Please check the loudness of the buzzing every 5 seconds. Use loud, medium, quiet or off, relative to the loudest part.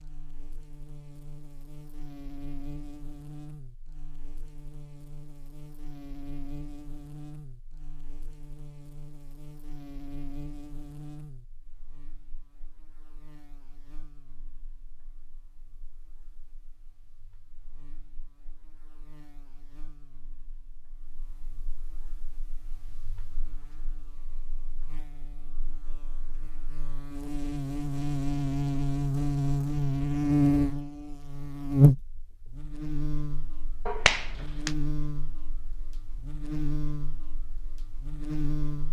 quiet, quiet, quiet, quiet, quiet, medium, loud, medium.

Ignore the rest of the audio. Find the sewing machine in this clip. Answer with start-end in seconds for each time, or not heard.
not heard.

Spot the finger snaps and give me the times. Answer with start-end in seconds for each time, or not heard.
33.9-34.8.